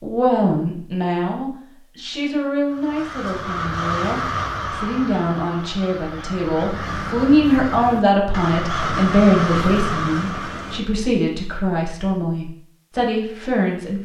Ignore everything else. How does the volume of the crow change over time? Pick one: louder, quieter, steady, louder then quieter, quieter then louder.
quieter then louder.